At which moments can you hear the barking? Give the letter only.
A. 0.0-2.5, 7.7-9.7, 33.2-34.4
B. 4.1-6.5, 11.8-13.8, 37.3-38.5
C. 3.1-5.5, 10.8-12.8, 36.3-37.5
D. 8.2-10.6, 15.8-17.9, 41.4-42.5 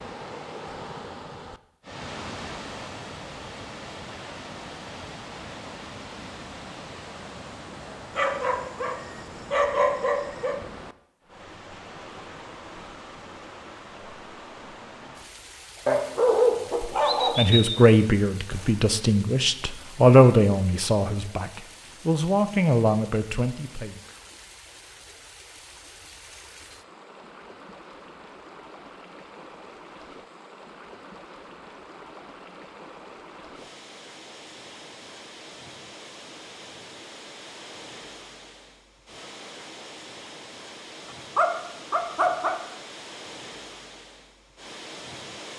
D.